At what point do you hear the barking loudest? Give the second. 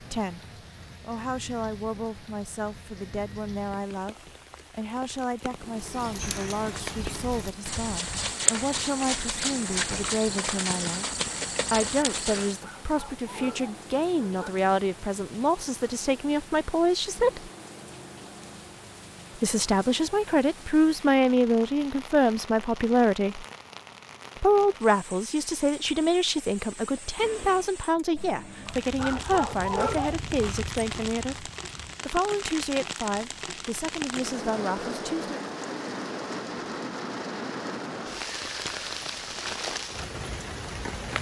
30 s.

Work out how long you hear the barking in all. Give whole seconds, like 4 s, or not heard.
3 s.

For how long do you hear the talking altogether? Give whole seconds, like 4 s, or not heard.
32 s.